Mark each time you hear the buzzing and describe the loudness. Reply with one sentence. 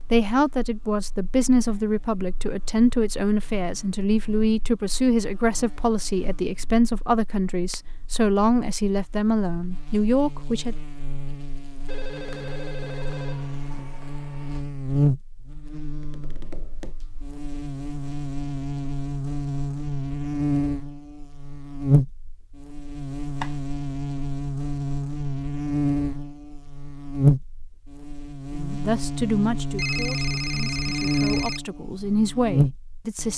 You can hear the buzzing from 0.0 to 33.3 s, getting louder.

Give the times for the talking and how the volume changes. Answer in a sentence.
You can hear the talking from 0.1 to 10.8 s, at a steady volume; and from 28.6 to 33.3 s, getting quieter then louder.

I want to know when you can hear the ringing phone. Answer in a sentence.
The ringing phone can be heard from 11.8 to 14.6 s and from 29.8 to 31.6 s.